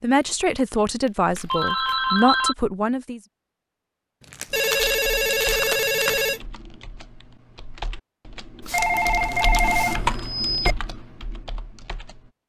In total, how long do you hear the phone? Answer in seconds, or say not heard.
5 s.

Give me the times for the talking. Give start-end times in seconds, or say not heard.
0.0-3.2.